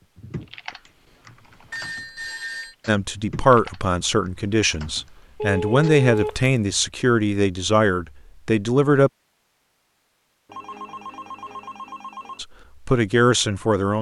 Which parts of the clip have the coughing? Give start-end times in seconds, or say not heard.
not heard.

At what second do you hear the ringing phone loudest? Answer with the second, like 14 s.
6 s.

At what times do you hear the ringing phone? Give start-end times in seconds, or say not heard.
1.7-2.8, 5.4-6.5, 10.4-12.4.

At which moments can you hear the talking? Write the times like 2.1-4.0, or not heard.
2.9-9.1, 12.3-13.9.